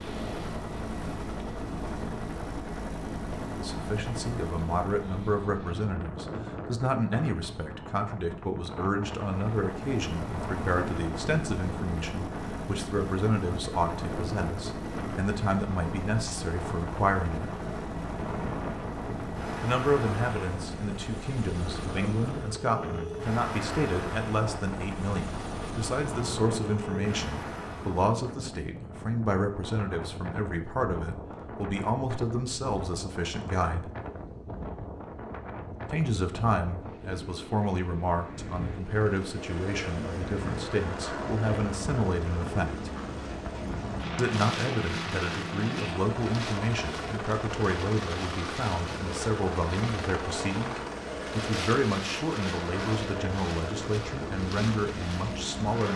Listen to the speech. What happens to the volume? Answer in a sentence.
The volume of the speech stays about the same.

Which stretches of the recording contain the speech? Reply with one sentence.
You can hear the speech from 3.5 to 17.5 s, from 19.6 to 33.9 s, from 35.9 to 42.9 s and from 44.1 to 55.9 s.